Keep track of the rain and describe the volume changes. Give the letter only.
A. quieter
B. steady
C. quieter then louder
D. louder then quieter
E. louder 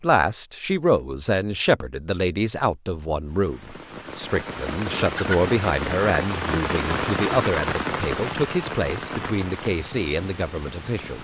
D.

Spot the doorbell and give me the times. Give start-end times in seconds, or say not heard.
not heard.